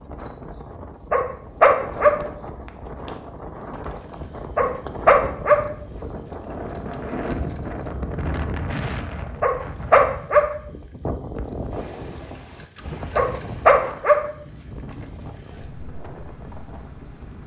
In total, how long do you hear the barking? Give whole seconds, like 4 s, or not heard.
4 s.